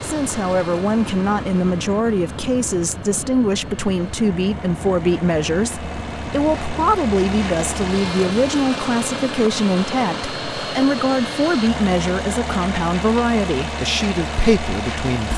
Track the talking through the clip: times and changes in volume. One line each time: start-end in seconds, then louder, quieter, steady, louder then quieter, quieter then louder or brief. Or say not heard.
0.0-15.3 steady.